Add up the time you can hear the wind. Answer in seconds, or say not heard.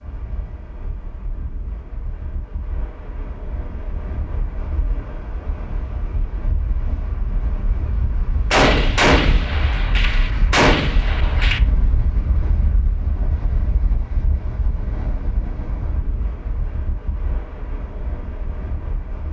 19 s.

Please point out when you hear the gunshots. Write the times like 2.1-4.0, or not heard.
8.5-11.6.